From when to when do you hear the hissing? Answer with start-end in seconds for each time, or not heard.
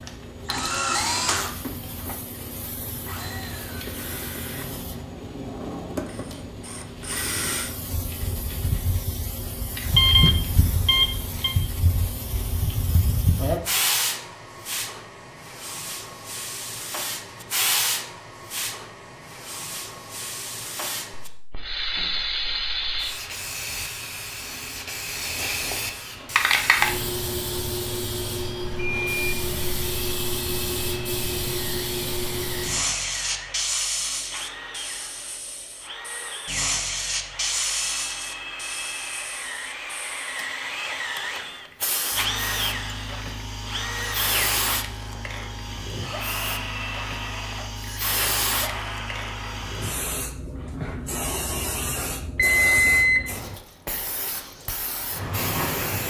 0.0-56.0.